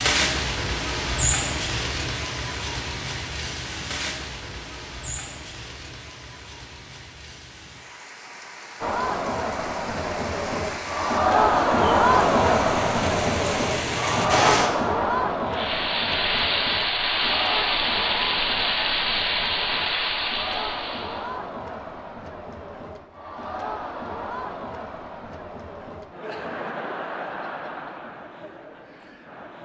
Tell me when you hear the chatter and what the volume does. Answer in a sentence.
You can hear the chatter from 8.8 to 29.6 s, getting quieter.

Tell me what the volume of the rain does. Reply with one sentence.
The volume of the rain goes down, then up.